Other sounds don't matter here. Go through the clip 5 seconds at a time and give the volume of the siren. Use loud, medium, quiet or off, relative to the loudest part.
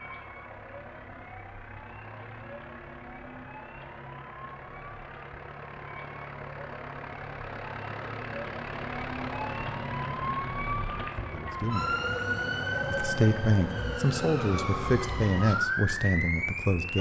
quiet, medium, loud, loud.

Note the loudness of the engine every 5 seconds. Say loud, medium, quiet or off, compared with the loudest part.
medium, loud, loud, medium.